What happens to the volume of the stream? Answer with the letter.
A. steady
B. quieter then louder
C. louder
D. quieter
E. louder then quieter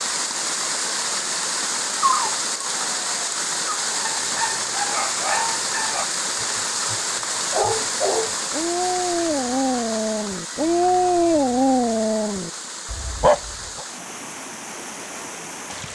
D.